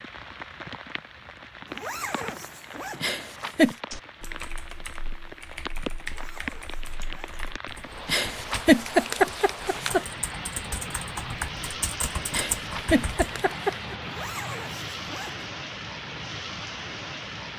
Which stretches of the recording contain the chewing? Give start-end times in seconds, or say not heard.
not heard.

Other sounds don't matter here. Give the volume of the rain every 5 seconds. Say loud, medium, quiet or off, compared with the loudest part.
medium, loud, loud, loud.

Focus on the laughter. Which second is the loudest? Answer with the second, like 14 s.
9 s.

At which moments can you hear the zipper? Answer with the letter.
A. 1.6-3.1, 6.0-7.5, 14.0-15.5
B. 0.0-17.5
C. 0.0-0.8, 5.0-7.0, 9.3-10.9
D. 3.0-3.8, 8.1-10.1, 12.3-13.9
A.